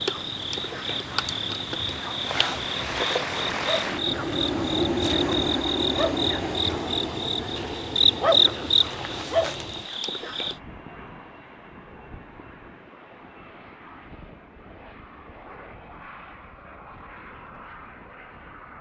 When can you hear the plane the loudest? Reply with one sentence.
The loudest moment of the plane is at 5 seconds.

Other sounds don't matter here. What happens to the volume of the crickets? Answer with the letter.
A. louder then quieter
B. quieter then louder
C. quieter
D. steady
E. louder
E.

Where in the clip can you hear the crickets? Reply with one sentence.
The crickets can be heard from 0.0 to 10.6 s.